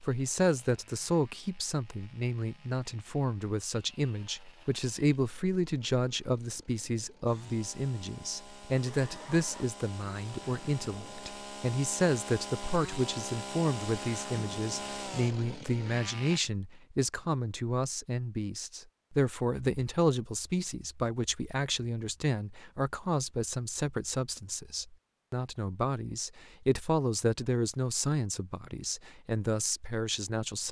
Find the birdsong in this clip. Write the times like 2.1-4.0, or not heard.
not heard.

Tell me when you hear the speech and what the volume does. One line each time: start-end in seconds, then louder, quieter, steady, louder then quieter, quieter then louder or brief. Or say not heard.
0.0-30.6 steady.